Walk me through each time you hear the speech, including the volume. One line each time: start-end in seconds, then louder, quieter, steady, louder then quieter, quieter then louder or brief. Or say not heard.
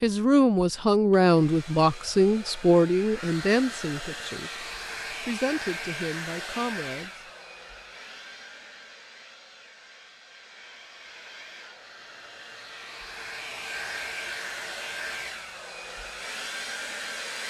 0.0-7.1 quieter.